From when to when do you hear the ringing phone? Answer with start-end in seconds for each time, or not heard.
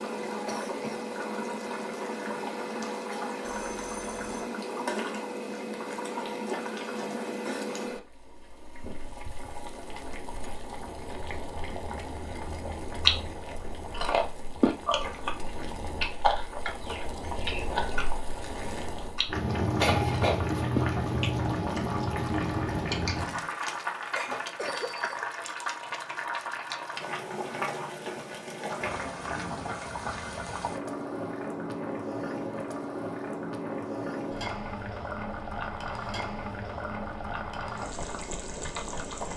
3.4-4.5, 24.3-25.1.